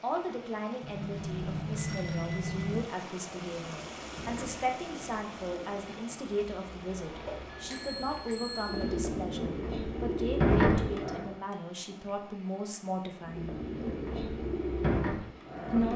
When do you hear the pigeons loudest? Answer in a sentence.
The volume of the pigeons peaks at 11 seconds.